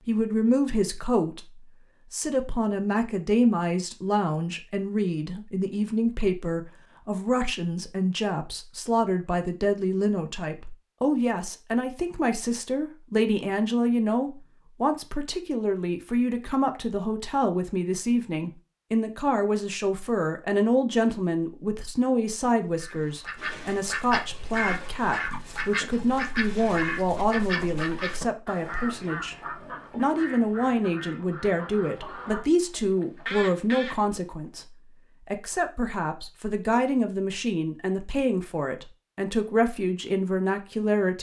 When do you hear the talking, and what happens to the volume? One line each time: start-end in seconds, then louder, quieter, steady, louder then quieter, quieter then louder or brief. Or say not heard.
0.1-41.1 steady.